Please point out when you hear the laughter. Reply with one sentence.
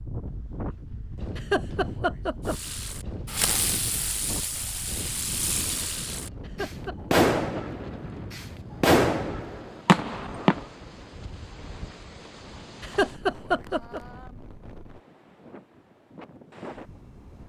The laughter can be heard from 1.4 to 2.5 s, from 6.4 to 7.7 s and from 12.8 to 14.0 s.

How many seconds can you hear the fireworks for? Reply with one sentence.
The fireworks can be heard for 8 seconds in total.